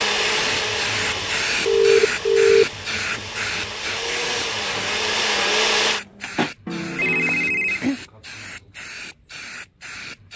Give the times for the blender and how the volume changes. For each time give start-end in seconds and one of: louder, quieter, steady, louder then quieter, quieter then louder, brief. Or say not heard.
0.0-6.5 quieter then louder.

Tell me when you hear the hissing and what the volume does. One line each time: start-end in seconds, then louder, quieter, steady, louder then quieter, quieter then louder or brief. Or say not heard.
0.0-10.3 quieter.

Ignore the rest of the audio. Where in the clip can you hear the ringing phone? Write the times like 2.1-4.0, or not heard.
1.6-2.6, 6.7-8.0.